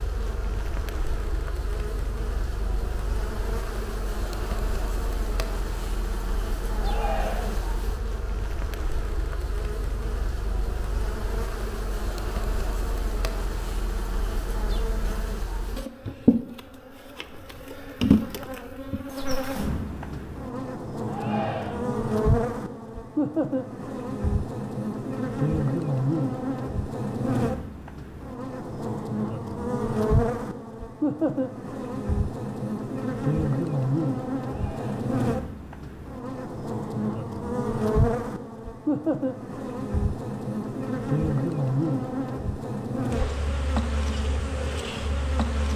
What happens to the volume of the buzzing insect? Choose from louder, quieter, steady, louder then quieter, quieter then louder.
louder.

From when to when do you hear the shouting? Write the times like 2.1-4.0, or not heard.
6.8-7.6, 21.1-21.9, 34.4-35.0.